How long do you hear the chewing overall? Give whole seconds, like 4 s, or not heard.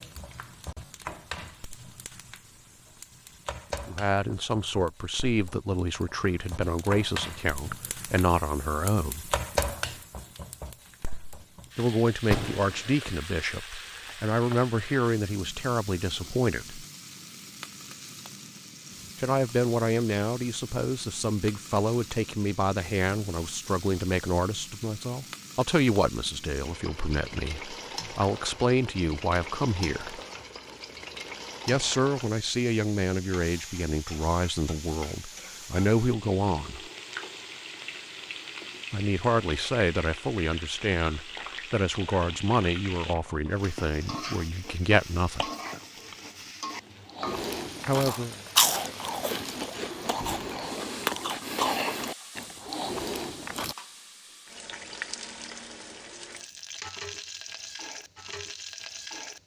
11 s.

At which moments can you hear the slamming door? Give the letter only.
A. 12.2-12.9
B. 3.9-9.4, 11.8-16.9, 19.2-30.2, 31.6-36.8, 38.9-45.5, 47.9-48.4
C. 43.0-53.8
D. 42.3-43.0
A.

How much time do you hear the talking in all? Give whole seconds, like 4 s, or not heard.
34 s.